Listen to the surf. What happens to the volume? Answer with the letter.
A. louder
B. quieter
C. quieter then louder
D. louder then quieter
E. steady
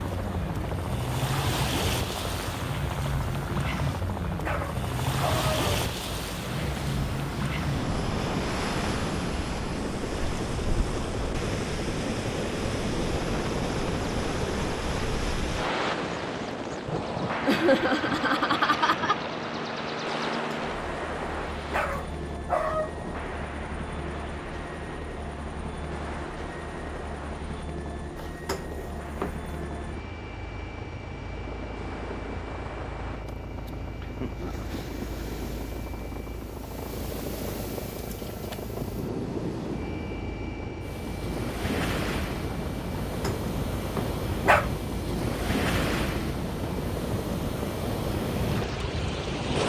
C.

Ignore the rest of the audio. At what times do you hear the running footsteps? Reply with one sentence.
You can't hear the running footsteps here.